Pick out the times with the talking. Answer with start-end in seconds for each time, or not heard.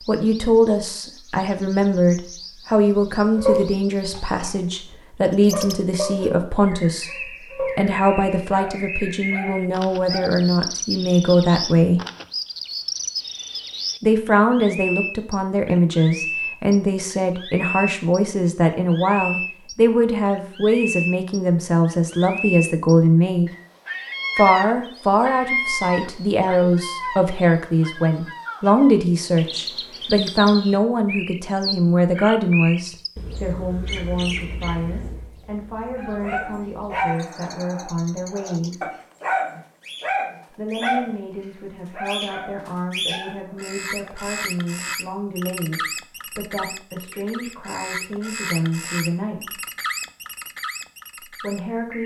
0.1-12.0, 14.0-23.5, 24.4-38.9, 40.5-49.6, 51.3-52.0.